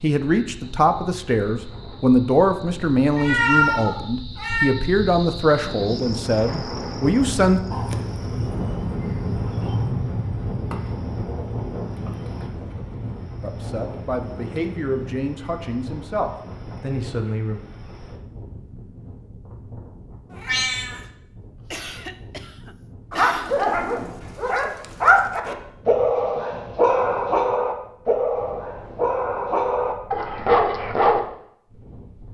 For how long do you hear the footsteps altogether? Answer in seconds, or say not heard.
not heard.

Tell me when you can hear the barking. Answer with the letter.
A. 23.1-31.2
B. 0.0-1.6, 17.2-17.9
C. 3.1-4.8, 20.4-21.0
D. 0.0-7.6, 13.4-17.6
A.